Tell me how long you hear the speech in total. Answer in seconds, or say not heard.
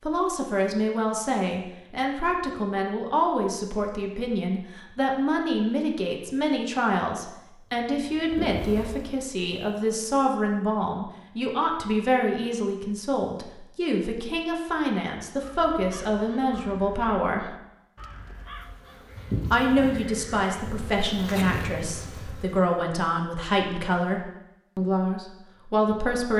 24 s.